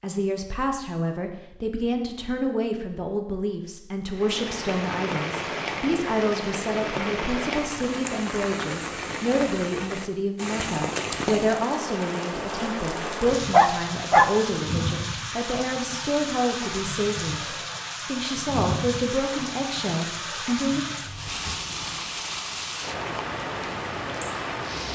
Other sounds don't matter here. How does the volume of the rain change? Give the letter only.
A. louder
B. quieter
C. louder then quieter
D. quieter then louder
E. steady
E.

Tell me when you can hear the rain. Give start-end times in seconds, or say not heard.
4.0-24.9.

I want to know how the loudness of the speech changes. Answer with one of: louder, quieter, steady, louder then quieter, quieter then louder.
steady.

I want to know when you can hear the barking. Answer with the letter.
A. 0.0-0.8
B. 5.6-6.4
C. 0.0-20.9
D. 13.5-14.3
D.